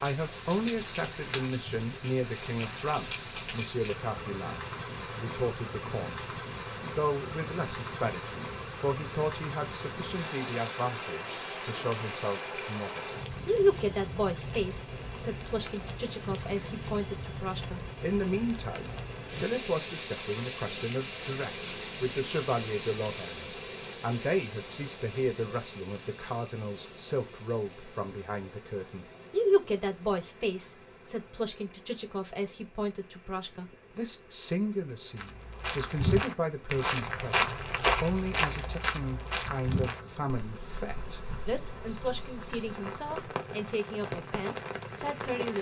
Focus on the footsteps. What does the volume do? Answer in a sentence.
The volume of the footsteps goes down.